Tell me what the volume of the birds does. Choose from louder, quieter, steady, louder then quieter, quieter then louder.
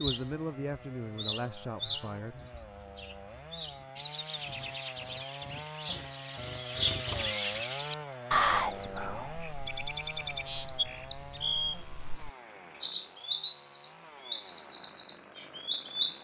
louder.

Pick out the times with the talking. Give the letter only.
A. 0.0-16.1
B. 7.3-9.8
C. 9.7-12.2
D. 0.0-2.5
D.